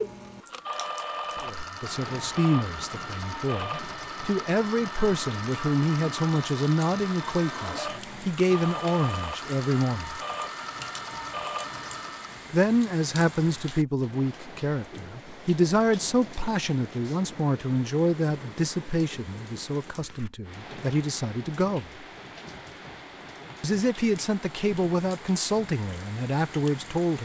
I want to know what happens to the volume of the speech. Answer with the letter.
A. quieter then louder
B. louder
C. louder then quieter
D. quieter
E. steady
E.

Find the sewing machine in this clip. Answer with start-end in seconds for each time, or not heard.
0.0-12.5.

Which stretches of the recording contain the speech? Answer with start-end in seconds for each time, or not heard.
1.4-10.2, 12.5-22.1, 23.6-27.2.